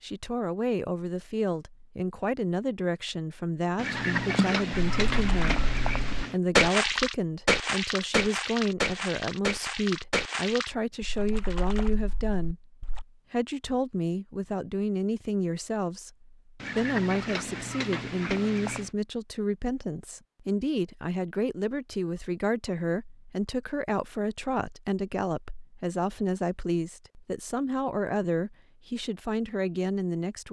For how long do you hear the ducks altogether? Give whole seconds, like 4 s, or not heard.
5 s.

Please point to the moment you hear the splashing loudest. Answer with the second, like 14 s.
7 s.